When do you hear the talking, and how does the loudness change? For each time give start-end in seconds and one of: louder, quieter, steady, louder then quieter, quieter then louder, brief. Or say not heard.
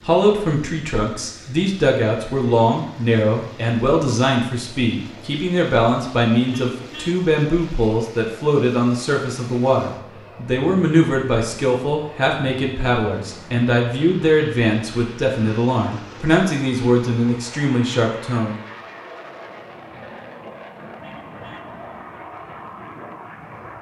0.0-18.6 steady.